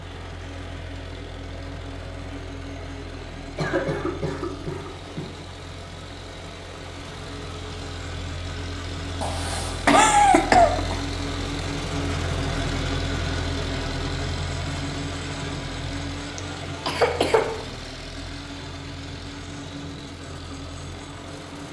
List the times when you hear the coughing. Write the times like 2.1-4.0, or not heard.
3.5-5.3, 9.2-10.9, 16.4-17.6.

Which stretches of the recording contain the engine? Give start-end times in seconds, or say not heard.
0.0-21.6.